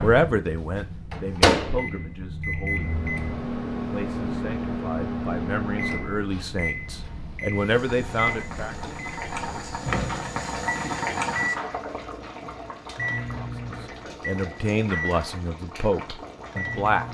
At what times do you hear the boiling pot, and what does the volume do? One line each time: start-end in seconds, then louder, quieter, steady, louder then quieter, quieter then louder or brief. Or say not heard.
7.5-17.0 louder then quieter.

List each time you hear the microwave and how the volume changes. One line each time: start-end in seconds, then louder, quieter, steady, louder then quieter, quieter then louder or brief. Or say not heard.
0.0-17.0 quieter.